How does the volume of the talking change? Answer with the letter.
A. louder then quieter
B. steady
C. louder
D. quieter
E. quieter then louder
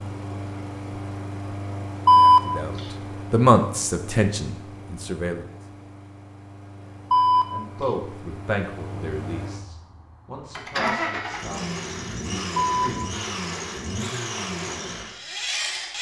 D.